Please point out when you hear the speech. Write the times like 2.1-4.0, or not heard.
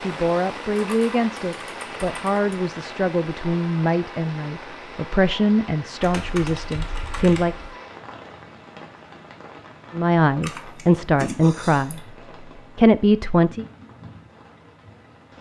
0.0-7.5, 9.9-12.1, 12.8-13.7.